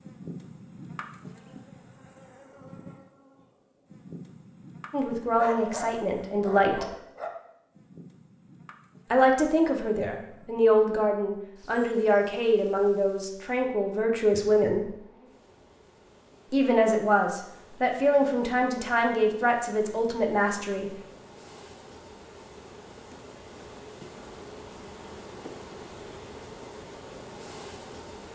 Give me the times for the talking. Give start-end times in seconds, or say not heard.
4.9-6.8, 9.1-14.9, 16.5-20.9.